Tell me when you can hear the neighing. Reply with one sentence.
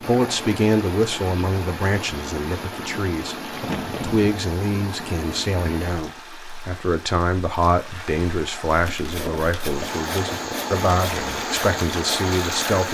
The neighing can't be heard in this clip.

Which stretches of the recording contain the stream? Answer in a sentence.
The stream can be heard from 0.0 to 12.9 s.